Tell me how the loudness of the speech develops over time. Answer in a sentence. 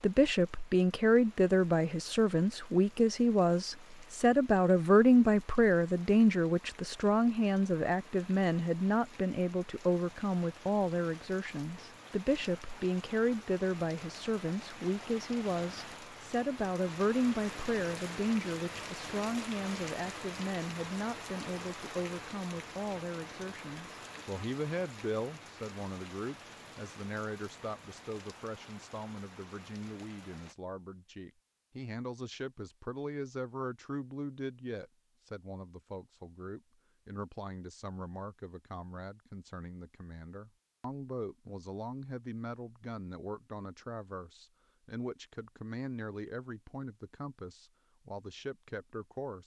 The volume of the speech goes down.